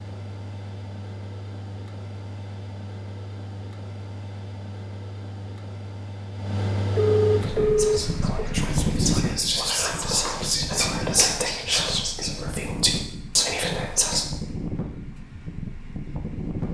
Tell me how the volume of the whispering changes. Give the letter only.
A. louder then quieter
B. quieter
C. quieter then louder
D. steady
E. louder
E.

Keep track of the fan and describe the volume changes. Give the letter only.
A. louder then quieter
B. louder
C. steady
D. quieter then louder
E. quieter
A.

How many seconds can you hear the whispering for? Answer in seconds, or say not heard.
7 s.